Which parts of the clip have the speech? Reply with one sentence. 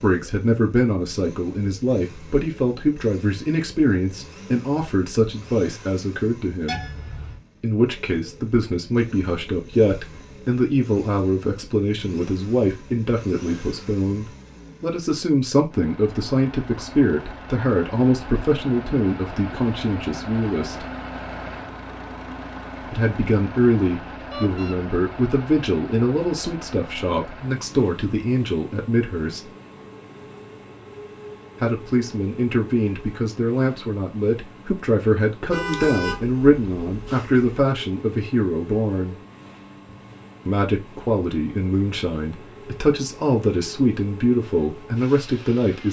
You can hear the speech from 0.0 to 6.8 s, from 7.6 to 20.9 s, from 22.9 to 29.5 s, from 31.6 to 39.1 s and from 40.5 to 45.8 s.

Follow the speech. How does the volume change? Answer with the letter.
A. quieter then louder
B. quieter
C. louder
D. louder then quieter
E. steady
E.